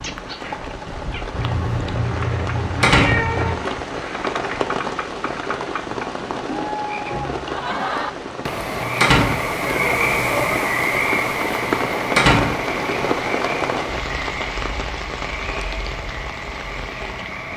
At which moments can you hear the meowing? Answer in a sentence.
The meowing can be heard from 1.3 to 3.6 s and from 9.7 to 10.6 s.